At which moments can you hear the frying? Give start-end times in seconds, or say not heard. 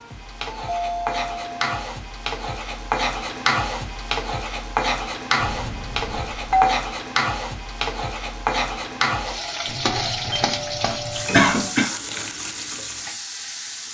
0.0-13.8.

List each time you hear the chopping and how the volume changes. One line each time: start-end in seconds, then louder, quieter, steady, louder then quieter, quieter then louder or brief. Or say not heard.
not heard.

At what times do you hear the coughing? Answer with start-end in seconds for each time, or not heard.
11.3-11.9.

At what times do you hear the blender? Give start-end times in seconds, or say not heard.
not heard.